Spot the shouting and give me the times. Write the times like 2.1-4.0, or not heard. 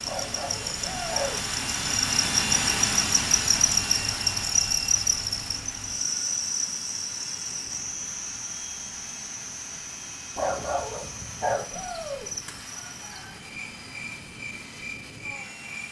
0.8-1.4, 11.7-12.3.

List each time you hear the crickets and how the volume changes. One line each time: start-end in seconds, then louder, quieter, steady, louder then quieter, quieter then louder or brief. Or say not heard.
0.0-15.8 quieter.